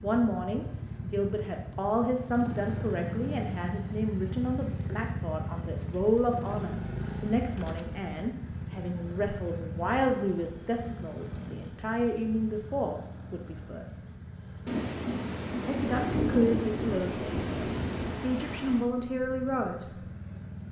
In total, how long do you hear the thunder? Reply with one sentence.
The thunder can be heard for 4 seconds in total.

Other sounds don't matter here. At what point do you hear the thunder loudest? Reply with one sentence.
The loudest moment of the thunder is at 16 seconds.